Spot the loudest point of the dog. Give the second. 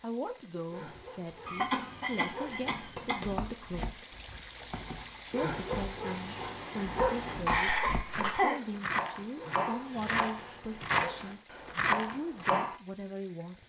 7 s.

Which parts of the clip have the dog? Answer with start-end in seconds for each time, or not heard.
0.7-2.9, 5.3-7.5, 9.3-11.4.